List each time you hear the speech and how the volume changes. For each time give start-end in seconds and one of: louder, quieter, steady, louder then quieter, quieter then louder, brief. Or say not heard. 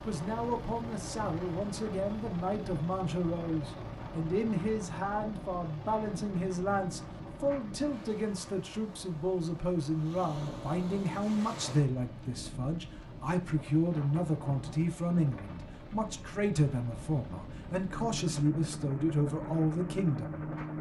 0.0-20.4 steady.